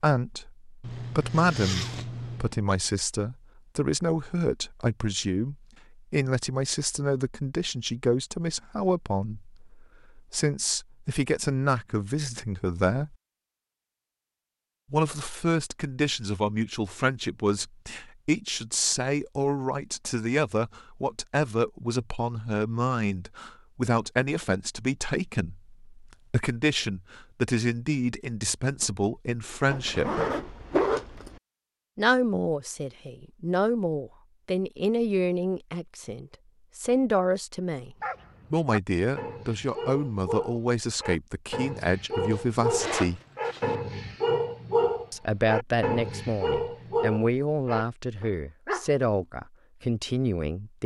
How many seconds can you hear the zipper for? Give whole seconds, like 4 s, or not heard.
5 s.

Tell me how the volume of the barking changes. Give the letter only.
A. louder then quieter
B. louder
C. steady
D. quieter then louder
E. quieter
B.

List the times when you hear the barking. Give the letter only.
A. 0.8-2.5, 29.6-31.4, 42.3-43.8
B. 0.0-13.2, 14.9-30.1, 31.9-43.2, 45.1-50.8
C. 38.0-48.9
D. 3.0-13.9
C.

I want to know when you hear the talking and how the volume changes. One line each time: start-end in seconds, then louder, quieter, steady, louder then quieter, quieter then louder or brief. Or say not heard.
0.0-13.2 steady
14.9-30.1 steady
31.9-43.2 steady
45.1-50.8 steady.